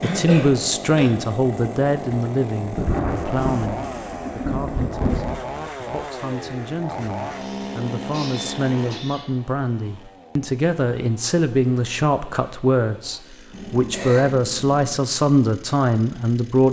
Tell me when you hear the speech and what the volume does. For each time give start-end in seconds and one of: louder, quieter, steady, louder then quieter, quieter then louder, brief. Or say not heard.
0.0-16.6 quieter then louder.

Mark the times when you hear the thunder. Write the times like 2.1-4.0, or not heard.
2.7-5.4.